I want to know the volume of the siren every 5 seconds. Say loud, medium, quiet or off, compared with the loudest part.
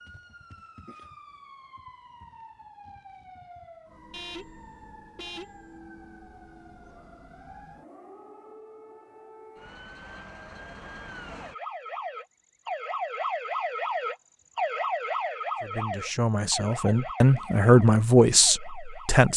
quiet, quiet, loud, loud.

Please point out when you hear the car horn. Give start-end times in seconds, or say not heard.
4.1-5.7.